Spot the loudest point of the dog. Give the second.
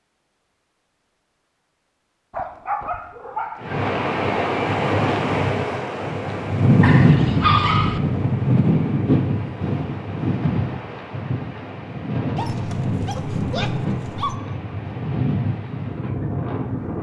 8 s.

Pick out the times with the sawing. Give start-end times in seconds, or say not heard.
not heard.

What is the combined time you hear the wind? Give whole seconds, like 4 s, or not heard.
13 s.